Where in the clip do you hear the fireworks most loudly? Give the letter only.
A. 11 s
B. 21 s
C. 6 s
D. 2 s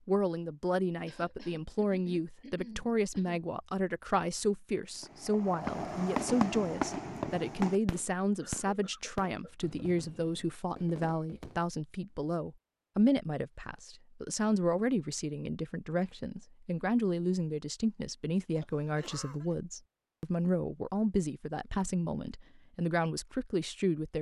C.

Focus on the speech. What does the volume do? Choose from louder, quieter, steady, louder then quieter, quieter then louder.
steady.